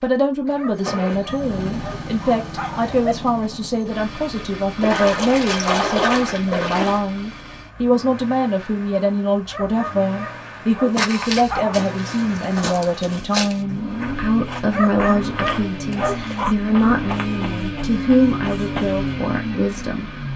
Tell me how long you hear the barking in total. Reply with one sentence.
You can hear the barking for 7 seconds altogether.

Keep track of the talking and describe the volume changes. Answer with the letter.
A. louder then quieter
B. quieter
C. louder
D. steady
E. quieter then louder
D.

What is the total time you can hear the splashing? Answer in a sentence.
The splashing can be heard for 2 seconds in total.